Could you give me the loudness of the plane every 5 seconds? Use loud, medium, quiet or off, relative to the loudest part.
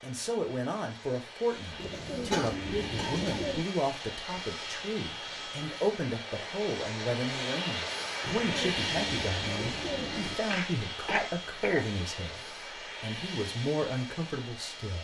medium, loud, medium.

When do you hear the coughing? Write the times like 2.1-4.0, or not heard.
2.3-3.5, 10.5-11.8.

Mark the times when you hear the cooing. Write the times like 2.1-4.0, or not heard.
1.8-3.7, 8.2-10.4.